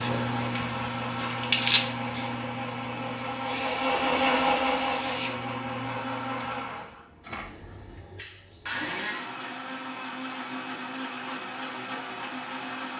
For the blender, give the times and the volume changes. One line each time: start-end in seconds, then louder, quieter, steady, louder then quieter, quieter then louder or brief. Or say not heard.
0.0-12.9 louder then quieter.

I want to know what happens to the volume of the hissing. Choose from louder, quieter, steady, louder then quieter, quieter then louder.
quieter.